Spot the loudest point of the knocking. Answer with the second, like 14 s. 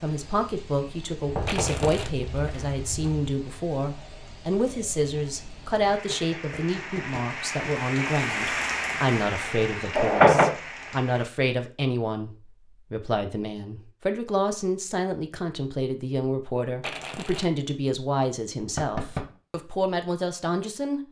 10 s.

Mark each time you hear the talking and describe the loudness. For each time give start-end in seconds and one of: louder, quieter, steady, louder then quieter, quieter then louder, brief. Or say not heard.
0.0-12.3 steady
12.9-21.0 steady.